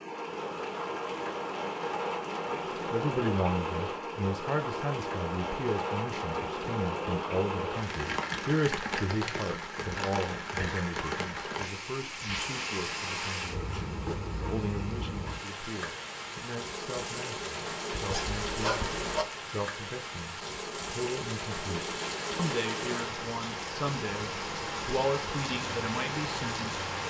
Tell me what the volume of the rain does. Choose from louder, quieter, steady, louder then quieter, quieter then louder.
steady.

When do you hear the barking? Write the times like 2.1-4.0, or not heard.
17.9-19.2.